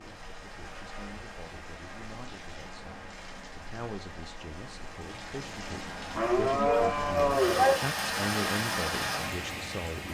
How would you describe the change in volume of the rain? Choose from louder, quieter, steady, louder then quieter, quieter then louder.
louder.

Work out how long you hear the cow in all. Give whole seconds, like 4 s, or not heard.
2 s.